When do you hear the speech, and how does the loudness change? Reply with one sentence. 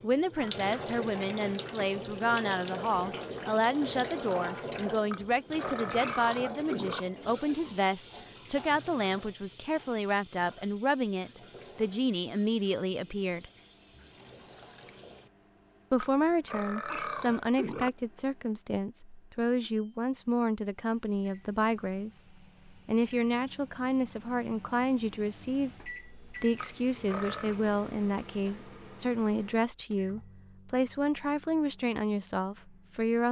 The speech can be heard from 0.0 to 13.4 s, at a steady volume; and from 15.9 to 33.2 s, at a steady volume.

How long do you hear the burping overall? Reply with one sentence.
You can hear the burping for 5 seconds altogether.